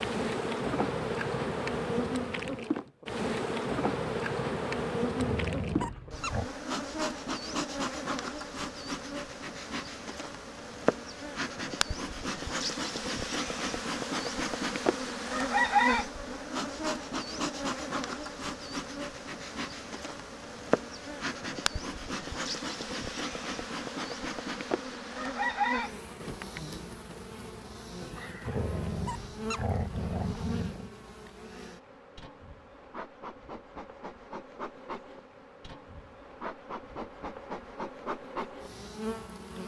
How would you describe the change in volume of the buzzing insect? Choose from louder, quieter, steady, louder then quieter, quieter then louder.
quieter.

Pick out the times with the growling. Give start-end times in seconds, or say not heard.
5.2-6.5, 28.4-30.9.